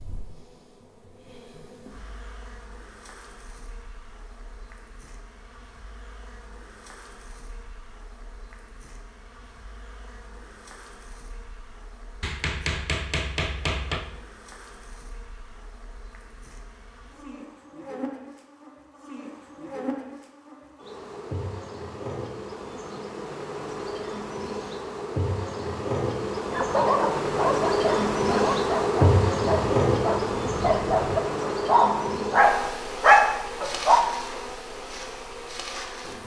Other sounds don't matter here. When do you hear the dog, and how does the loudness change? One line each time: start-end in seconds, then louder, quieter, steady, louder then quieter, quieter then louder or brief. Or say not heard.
26.5-34.0 louder.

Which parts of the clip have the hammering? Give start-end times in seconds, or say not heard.
12.2-14.1.